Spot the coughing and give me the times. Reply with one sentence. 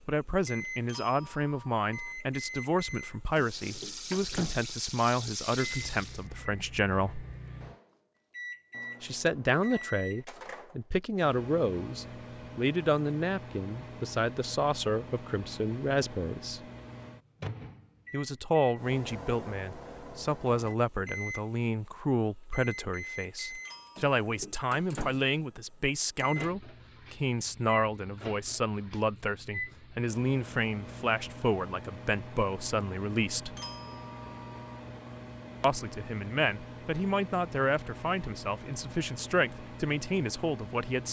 You can't hear the coughing here.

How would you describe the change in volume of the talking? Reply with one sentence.
The volume of the talking stays about the same.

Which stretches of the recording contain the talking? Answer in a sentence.
You can hear the talking from 0.1 to 7.2 s, from 9.0 to 16.6 s, from 18.1 to 33.5 s and from 35.6 to 41.0 s.